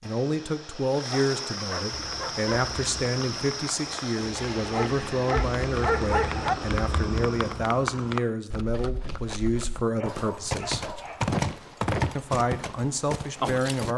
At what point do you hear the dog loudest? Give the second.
6 s.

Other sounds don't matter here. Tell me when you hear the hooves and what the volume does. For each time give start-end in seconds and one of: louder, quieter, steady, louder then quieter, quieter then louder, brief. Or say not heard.
1.9-13.9 louder.